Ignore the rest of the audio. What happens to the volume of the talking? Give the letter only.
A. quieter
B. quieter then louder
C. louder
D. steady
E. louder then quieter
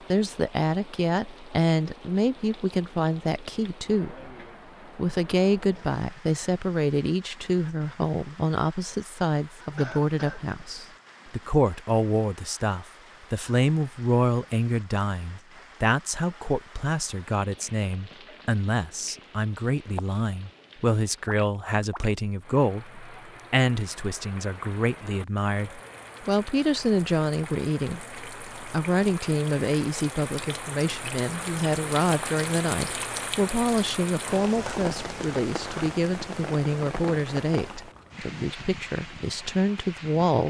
D.